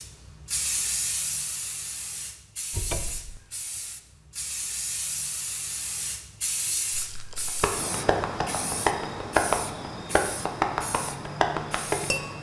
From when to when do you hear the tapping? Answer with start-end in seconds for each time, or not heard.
7.5-12.3.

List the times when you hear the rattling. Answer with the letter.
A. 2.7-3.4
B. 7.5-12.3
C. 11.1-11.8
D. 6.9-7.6
D.